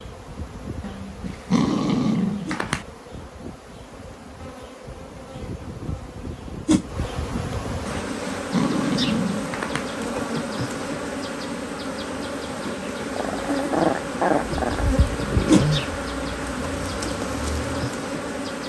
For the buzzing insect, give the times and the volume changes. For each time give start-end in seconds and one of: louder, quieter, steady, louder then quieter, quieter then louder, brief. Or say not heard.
0.0-18.6 louder.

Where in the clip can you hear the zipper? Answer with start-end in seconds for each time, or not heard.
not heard.